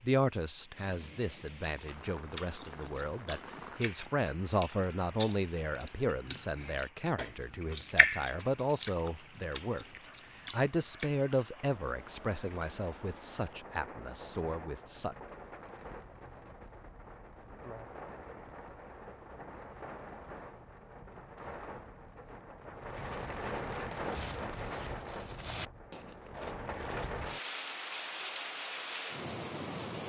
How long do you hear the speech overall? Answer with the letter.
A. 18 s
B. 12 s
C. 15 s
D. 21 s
C.